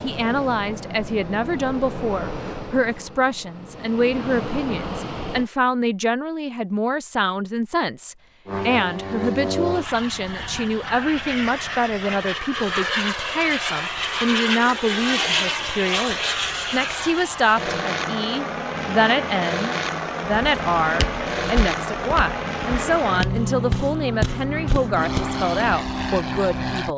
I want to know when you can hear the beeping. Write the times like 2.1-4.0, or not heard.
not heard.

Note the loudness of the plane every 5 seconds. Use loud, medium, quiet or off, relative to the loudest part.
medium, loud, loud, loud, loud, loud.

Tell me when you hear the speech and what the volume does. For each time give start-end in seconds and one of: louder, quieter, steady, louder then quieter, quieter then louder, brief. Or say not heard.
0.0-26.9 steady.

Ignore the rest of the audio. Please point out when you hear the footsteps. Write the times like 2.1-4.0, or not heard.
20.2-25.2.